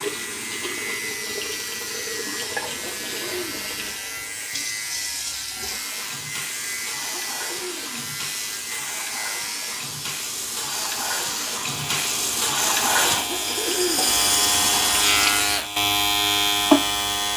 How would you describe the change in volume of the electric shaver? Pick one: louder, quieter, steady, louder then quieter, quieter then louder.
louder.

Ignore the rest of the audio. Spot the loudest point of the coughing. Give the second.
14 s.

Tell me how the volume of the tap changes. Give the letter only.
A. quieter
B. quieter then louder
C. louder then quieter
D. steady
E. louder
E.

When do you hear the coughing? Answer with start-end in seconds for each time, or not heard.
2.7-3.6, 7.2-8.2, 13.2-14.2.